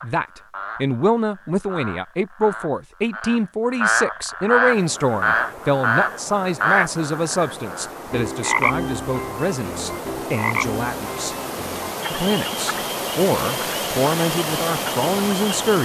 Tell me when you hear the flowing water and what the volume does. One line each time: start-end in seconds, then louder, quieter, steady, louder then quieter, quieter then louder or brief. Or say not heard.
4.7-15.8 louder.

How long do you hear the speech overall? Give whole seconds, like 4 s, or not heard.
15 s.